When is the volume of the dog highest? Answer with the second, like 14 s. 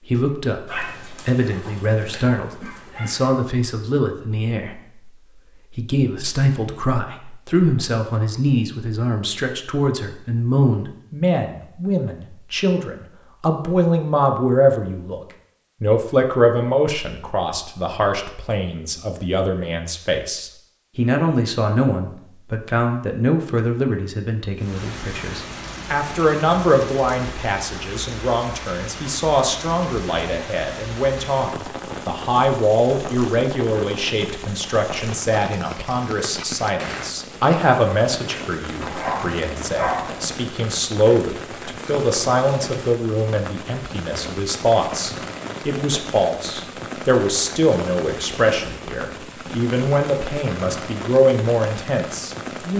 40 s.